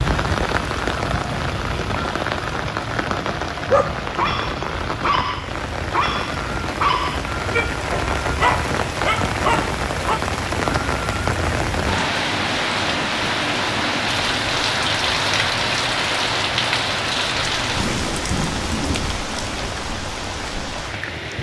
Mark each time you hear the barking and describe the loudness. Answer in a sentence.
You can hear the barking from 3.5 to 10.2 s, at a steady volume.